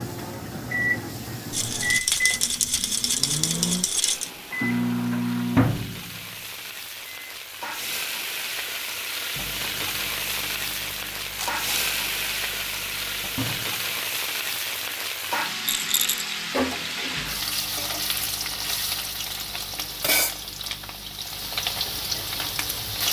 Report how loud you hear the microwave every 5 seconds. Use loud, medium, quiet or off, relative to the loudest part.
loud, loud, quiet, quiet, quiet.